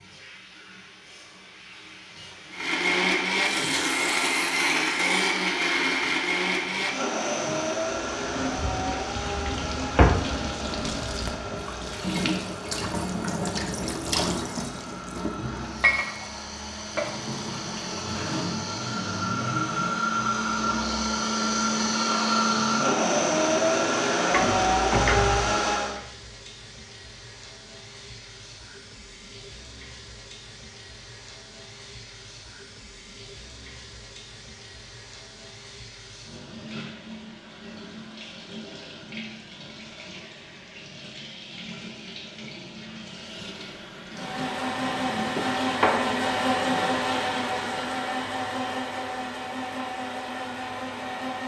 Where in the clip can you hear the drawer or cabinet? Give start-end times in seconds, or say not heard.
8.6-10.2, 24.3-25.6, 45.4-47.0.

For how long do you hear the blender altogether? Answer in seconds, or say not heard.
31 s.